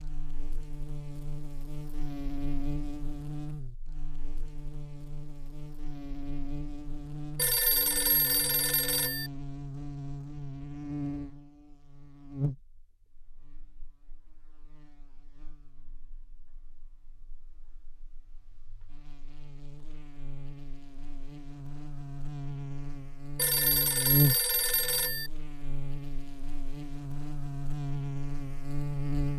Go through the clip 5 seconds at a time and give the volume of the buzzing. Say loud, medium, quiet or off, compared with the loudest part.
medium, medium, medium, quiet, loud, loud.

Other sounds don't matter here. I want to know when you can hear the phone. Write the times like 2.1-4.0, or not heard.
7.3-9.3, 23.4-25.3.